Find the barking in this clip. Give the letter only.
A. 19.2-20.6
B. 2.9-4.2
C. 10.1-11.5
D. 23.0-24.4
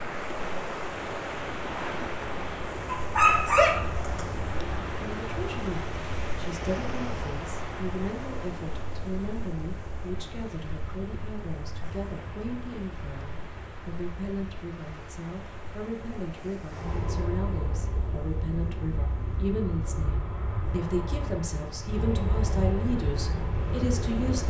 B.